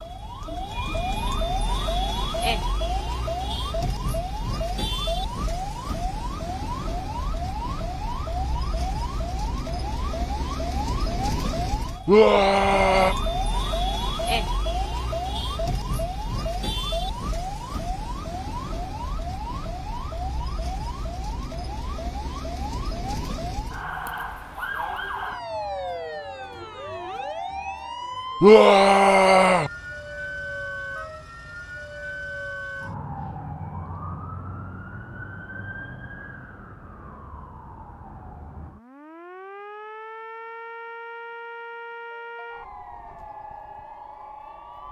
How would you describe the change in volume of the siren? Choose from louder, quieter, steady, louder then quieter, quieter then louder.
quieter.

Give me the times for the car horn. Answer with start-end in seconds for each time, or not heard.
not heard.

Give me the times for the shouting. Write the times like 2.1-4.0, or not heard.
12.1-13.2, 28.4-29.7.